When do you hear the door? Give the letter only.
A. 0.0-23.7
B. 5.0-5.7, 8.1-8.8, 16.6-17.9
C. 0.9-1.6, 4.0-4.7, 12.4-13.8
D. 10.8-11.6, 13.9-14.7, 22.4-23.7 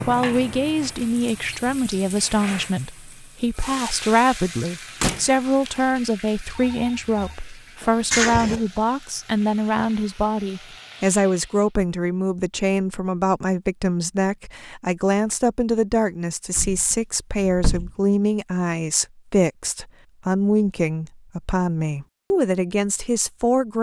B.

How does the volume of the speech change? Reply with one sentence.
The loudness of the speech stays about the same.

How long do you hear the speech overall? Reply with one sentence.
The speech can be heard for 24 seconds in total.